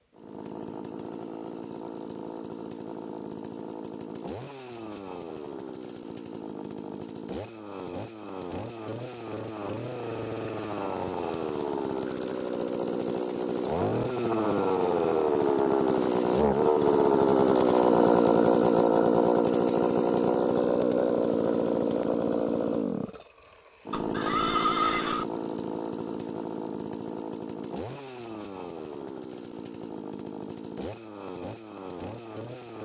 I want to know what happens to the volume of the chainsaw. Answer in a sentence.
The loudness of the chainsaw goes up, then down.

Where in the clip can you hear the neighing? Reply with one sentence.
You can hear the neighing from 23.9 to 25.2 s.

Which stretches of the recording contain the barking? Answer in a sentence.
You can't hear the barking here.